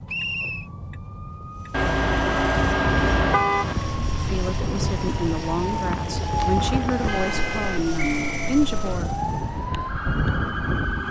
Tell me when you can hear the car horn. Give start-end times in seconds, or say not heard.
1.7-3.8, 6.3-7.8.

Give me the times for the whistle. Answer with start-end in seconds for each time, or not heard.
0.1-0.7, 8.0-8.6.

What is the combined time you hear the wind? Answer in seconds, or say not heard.
8 s.